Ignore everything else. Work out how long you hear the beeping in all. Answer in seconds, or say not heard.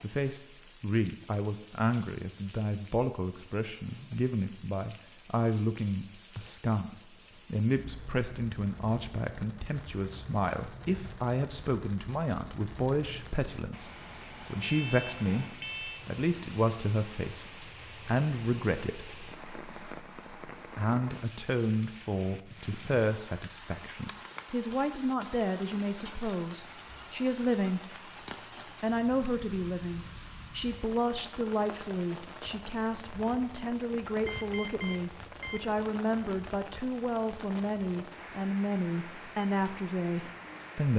3 s.